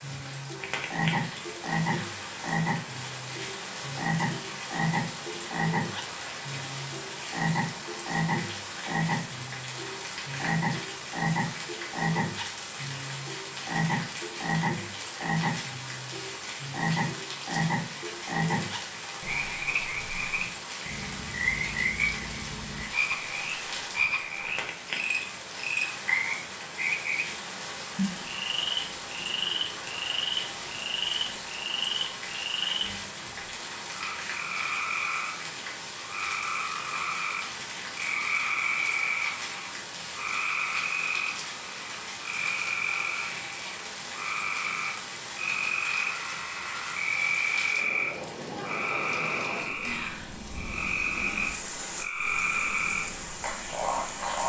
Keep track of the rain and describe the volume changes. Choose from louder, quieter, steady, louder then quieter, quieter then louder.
steady.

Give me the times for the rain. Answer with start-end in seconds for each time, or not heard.
0.0-54.4.